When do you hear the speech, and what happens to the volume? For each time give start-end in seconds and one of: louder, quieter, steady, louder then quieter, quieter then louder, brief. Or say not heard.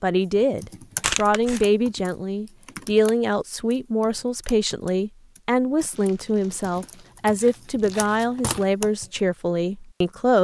0.0-10.3 steady.